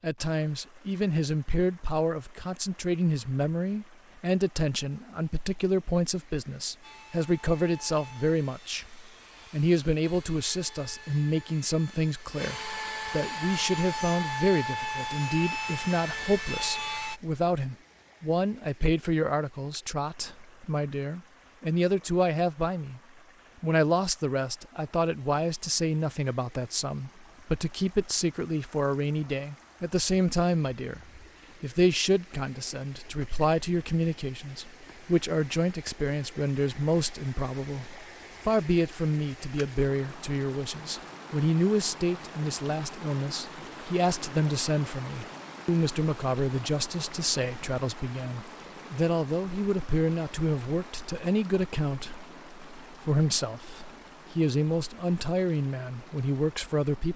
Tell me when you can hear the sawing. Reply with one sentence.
The sawing can be heard from 6.8 to 17.2 s.